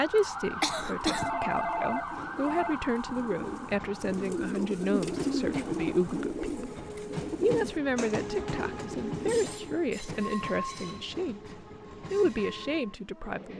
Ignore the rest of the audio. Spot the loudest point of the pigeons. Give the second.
5 s.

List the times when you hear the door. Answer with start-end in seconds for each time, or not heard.
not heard.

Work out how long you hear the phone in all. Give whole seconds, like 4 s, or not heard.
2 s.